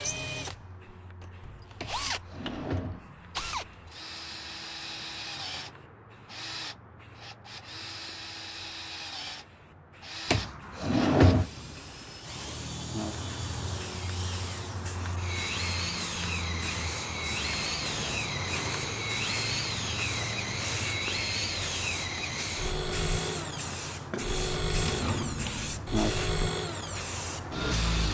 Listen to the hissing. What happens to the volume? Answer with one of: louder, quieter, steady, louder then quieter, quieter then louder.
louder.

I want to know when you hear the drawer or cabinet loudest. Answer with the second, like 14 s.
11 s.